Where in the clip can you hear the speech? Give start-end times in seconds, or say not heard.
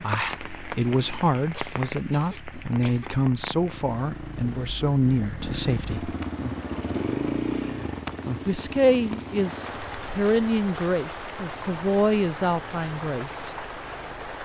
0.0-6.2, 8.4-13.6.